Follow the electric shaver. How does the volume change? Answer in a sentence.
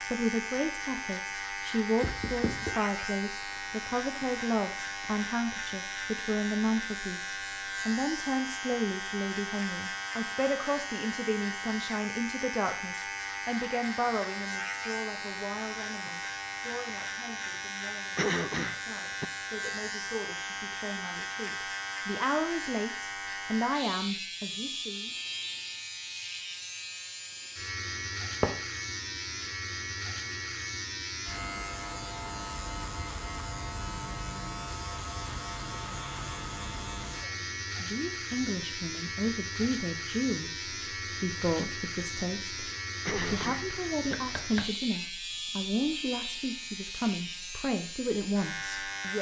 The loudness of the electric shaver stays about the same.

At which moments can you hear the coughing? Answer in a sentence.
You can hear the coughing from 18.1 to 19.2 s and from 43.0 to 44.1 s.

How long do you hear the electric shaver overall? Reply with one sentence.
The electric shaver can be heard for 49 seconds in total.